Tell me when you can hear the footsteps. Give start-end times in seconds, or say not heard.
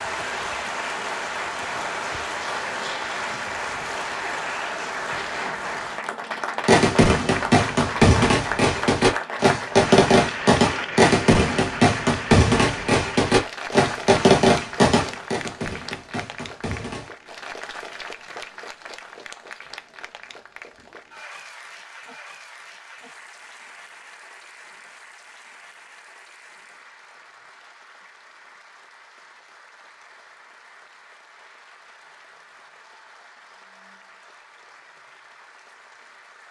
not heard.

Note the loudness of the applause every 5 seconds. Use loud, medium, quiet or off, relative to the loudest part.
loud, loud, loud, medium, quiet, quiet, quiet, quiet.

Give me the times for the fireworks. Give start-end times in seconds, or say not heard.
6.7-17.1.